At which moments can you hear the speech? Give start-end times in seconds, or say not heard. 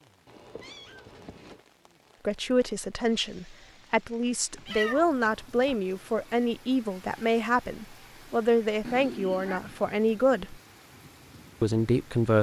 2.2-10.6, 11.6-12.3.